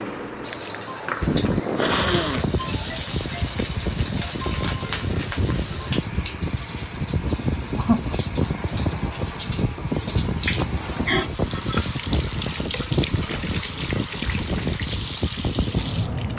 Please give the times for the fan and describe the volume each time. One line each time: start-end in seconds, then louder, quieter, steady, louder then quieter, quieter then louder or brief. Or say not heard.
0.0-16.3 steady.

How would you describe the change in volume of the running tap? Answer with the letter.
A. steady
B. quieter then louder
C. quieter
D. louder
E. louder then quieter
A.